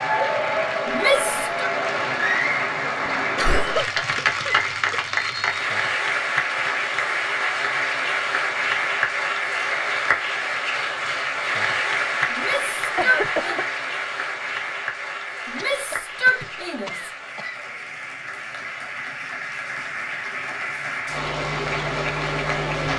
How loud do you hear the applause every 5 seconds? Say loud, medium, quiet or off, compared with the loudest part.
loud, loud, loud, medium, loud.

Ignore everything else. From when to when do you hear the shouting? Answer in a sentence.
The shouting can be heard from 0.8 to 1.7 s, from 12.3 to 13.6 s and from 15.4 to 17.1 s.